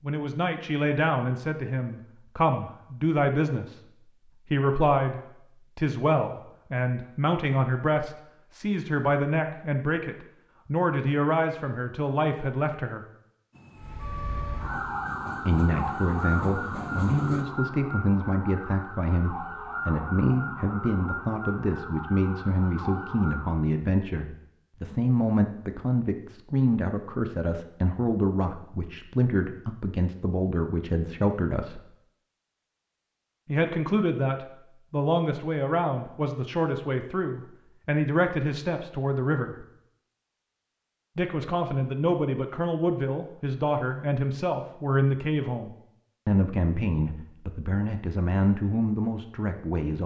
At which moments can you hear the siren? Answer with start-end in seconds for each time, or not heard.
13.8-23.6.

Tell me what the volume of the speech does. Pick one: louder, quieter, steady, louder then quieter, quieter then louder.
steady.